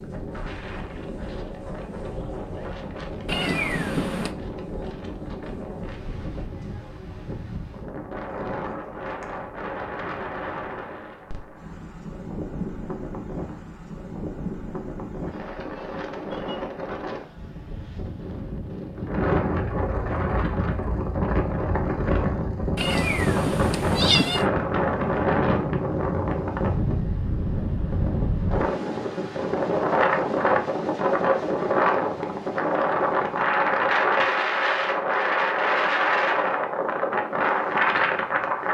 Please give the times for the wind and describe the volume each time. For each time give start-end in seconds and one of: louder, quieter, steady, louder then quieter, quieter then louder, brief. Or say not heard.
0.0-38.6 louder.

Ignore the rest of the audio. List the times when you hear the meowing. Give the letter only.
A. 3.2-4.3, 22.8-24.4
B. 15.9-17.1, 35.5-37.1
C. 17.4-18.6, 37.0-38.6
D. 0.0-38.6
A.